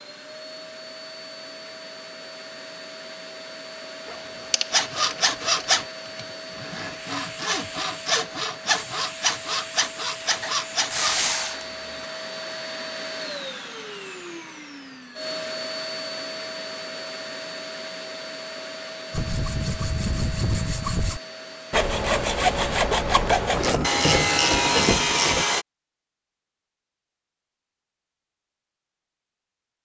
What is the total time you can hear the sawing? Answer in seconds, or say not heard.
13 s.